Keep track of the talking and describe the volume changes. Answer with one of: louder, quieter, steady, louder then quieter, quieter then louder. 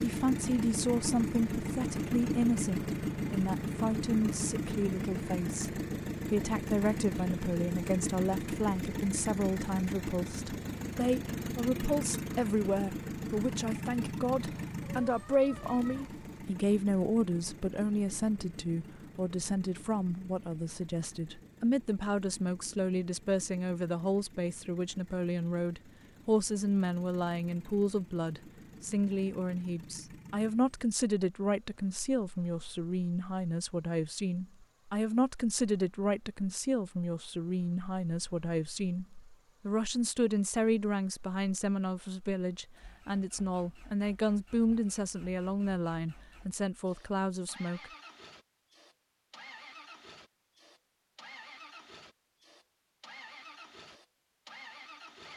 steady.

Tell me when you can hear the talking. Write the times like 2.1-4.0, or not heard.
0.0-47.9.